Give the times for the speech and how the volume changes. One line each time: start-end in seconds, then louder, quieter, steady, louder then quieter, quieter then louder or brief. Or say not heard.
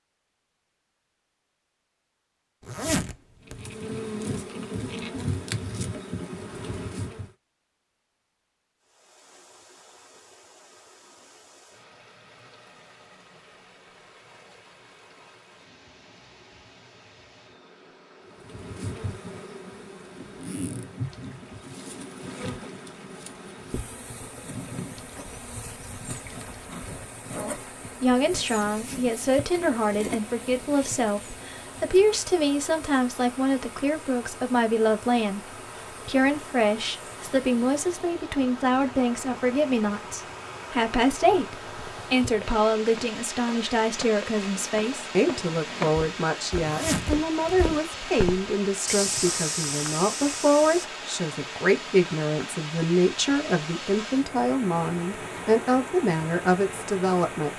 27.4-57.5 steady.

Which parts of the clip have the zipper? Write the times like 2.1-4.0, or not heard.
2.6-3.7, 46.6-47.8.